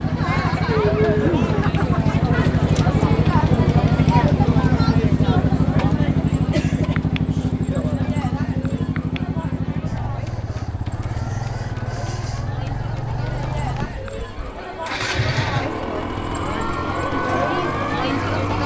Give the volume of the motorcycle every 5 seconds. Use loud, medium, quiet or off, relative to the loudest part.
loud, loud, medium, medium.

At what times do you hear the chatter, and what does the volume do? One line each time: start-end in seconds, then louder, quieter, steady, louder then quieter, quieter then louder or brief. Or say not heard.
0.0-18.6 quieter then louder.